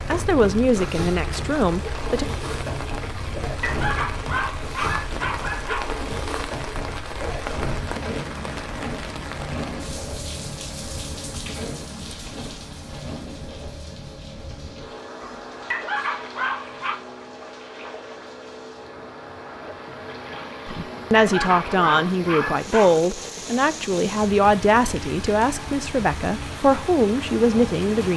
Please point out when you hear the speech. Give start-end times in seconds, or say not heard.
0.1-2.2, 20.6-28.1.